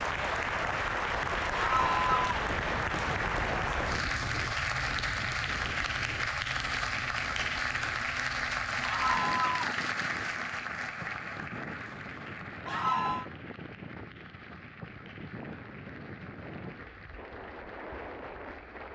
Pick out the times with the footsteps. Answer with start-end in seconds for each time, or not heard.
not heard.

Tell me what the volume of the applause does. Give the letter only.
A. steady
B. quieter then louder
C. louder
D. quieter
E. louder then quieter
D.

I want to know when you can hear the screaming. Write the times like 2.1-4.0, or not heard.
1.5-2.4, 8.8-9.8, 12.7-13.2.